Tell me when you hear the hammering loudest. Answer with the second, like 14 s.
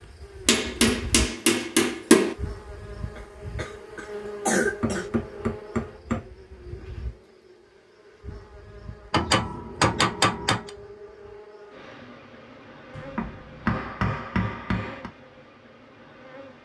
2 s.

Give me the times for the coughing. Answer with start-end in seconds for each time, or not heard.
3.1-5.1.